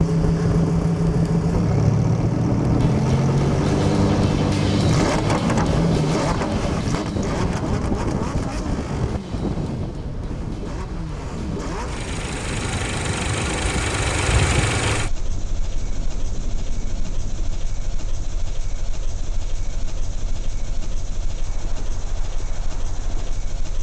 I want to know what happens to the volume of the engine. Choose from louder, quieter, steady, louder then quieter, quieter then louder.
quieter.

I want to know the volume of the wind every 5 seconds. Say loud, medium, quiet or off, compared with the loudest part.
loud, loud, medium, quiet, quiet.